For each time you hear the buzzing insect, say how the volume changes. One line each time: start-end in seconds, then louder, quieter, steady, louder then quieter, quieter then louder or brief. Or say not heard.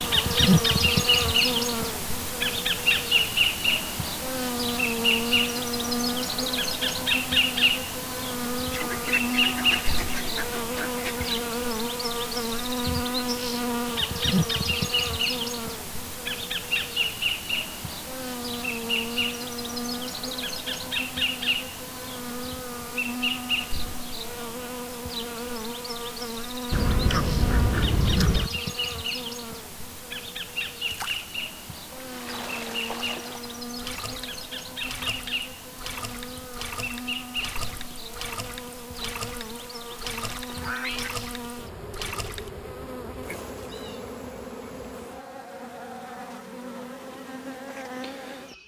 0.0-48.6 quieter.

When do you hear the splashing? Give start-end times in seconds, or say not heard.
30.9-42.5.